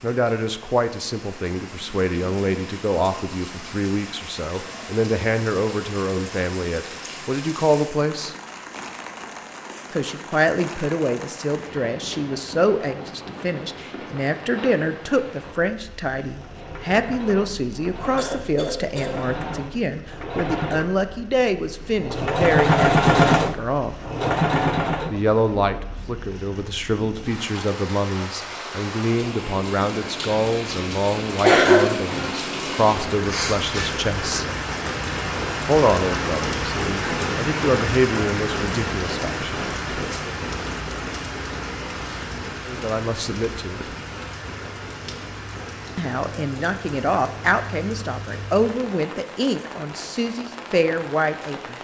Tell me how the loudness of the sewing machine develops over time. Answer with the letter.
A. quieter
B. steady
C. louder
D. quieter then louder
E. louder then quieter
C.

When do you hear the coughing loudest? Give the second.
32 s.